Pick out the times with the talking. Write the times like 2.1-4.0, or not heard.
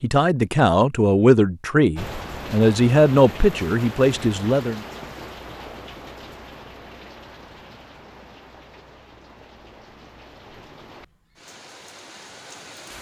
0.0-4.8.